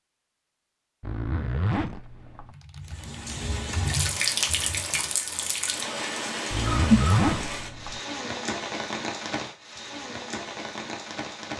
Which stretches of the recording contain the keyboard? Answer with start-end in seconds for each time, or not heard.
2.5-5.2.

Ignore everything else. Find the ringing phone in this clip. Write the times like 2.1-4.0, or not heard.
not heard.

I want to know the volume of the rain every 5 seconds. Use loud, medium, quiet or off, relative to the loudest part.
loud, loud, medium.